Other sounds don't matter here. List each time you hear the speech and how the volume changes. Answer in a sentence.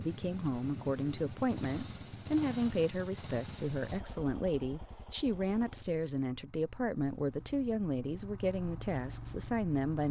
The speech can be heard from 0.0 to 10.0 s, at a steady volume.